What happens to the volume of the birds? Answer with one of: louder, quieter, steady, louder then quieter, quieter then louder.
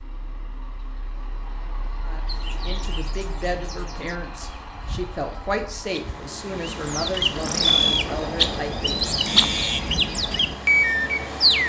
louder.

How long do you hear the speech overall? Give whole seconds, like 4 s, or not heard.
7 s.